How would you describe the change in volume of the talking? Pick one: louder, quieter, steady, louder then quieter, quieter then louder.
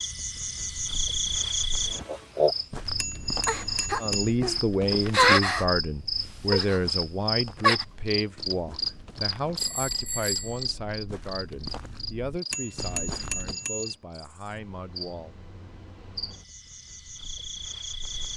quieter.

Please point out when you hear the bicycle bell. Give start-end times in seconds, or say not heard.
3.0-4.3, 9.6-10.7, 12.5-13.9.